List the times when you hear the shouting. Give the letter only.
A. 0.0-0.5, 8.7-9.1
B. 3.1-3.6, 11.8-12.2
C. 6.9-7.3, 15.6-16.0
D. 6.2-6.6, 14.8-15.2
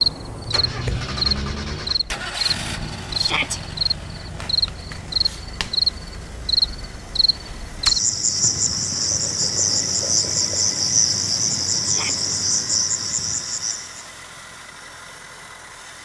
B.